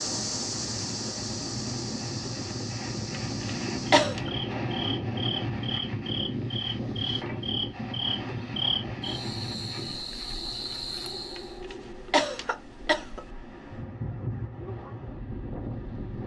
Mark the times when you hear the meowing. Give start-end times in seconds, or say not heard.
not heard.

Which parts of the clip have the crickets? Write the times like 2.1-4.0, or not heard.
0.0-11.6.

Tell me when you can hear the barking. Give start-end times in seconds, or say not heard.
not heard.